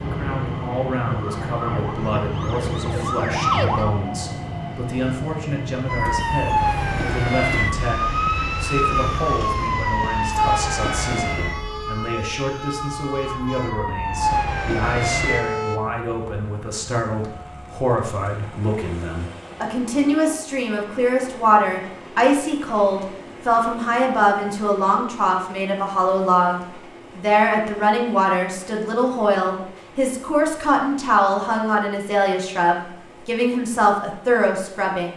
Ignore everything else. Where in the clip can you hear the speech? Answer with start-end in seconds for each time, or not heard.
0.0-35.1.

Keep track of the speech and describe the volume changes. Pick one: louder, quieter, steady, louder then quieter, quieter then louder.
louder.